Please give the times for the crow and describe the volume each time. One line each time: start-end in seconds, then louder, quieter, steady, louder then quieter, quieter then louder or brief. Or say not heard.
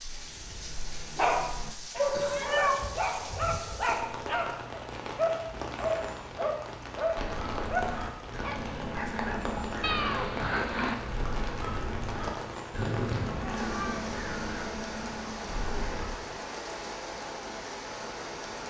7.2-16.1 steady.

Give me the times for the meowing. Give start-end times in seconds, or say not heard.
2.1-2.8, 9.8-10.9, 12.8-14.2.